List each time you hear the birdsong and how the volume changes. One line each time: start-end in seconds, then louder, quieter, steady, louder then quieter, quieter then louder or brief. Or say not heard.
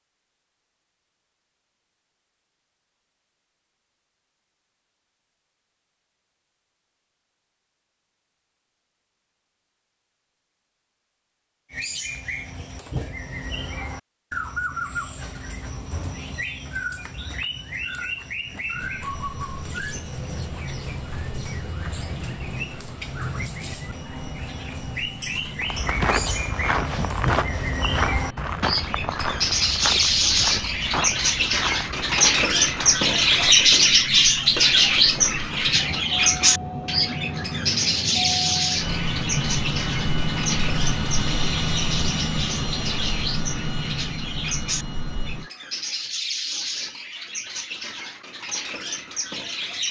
11.7-49.8 louder then quieter.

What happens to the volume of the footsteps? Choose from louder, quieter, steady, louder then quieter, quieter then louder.
quieter.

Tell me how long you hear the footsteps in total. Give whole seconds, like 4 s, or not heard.
8 s.